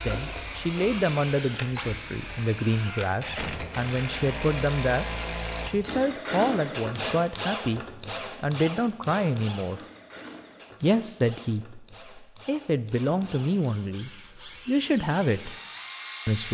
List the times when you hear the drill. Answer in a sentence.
You can hear the drill from 0.0 to 16.4 s.